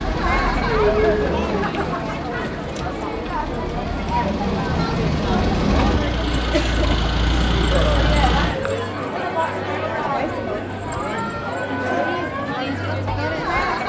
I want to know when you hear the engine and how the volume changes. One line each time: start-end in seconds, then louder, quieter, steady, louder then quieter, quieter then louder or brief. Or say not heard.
0.0-8.6 quieter then louder.